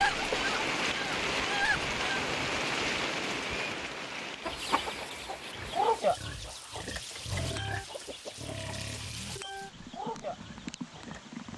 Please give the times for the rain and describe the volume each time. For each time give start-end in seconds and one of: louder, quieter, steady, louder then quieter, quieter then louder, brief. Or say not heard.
0.0-11.5 quieter.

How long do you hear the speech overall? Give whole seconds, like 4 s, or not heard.
not heard.